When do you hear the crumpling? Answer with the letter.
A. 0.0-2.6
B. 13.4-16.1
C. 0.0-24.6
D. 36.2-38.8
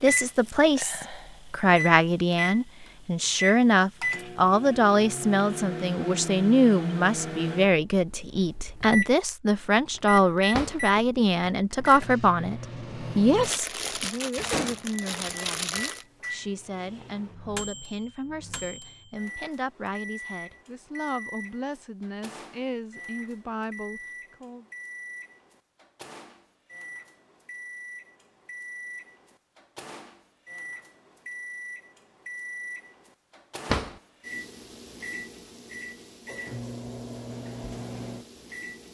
B.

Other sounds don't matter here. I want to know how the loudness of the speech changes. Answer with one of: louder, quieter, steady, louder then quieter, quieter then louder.
quieter.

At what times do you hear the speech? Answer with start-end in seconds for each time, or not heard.
0.0-24.6.